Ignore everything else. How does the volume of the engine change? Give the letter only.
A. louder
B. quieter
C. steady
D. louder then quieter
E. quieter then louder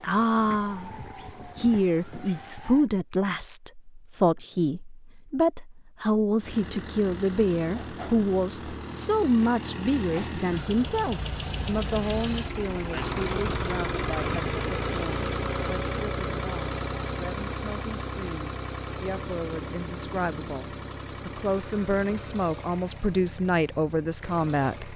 D.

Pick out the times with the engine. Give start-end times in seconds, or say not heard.
6.4-24.9.